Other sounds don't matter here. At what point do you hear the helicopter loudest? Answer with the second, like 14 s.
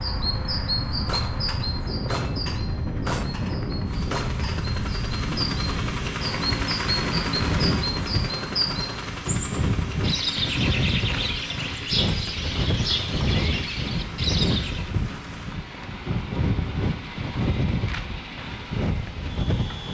7 s.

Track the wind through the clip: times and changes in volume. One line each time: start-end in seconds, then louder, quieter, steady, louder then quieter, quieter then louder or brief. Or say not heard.
0.0-19.8 steady.